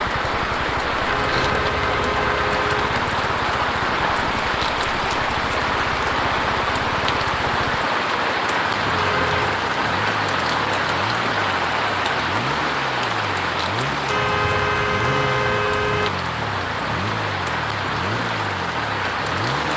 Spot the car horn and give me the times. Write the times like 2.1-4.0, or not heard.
1.1-2.9, 8.9-9.6, 14.1-16.1.